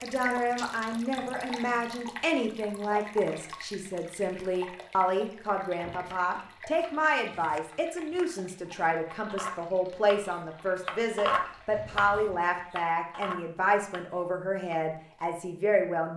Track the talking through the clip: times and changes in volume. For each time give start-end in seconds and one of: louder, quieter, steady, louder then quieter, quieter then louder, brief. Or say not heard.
0.0-16.1 steady.